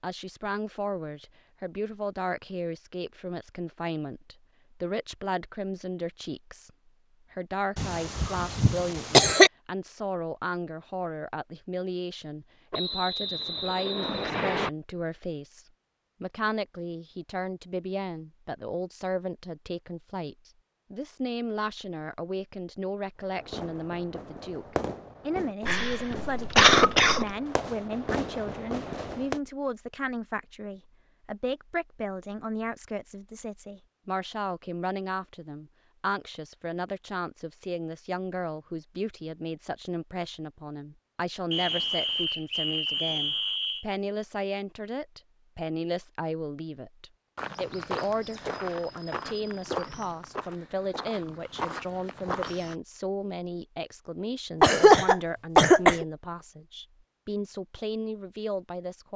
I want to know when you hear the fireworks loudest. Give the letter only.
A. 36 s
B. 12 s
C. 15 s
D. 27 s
D.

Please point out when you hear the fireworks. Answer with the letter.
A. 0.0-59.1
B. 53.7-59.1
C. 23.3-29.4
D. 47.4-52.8
C.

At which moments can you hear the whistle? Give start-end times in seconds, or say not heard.
12.7-14.7, 41.5-43.9.